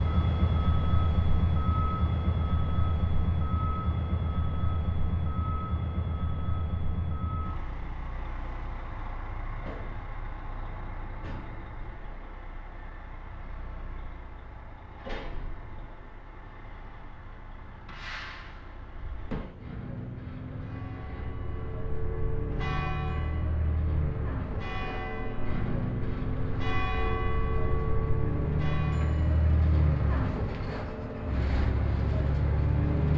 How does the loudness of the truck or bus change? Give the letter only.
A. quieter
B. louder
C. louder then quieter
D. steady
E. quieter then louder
E.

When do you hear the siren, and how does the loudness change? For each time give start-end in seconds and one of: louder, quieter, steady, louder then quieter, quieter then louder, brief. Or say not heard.
not heard.